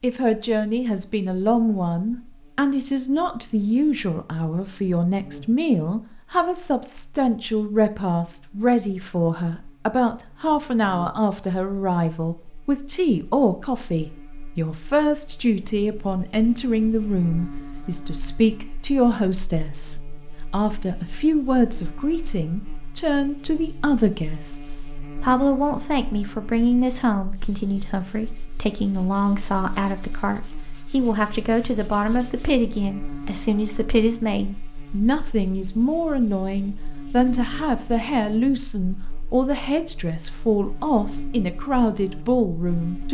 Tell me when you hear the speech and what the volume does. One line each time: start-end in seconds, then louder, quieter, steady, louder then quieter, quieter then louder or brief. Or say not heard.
0.0-43.1 steady.